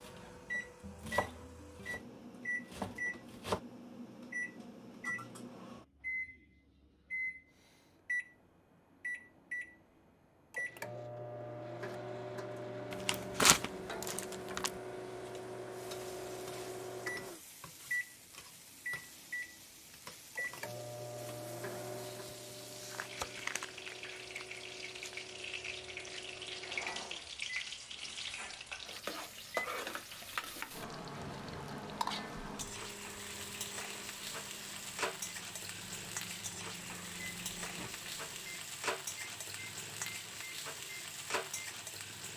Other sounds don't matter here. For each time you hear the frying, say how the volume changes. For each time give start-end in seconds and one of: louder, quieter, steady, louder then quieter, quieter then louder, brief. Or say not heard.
13.7-42.3 louder.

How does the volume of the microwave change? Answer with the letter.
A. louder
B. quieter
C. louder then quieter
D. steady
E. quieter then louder
B.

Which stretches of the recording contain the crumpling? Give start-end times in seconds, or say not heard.
12.9-14.7, 22.7-25.2.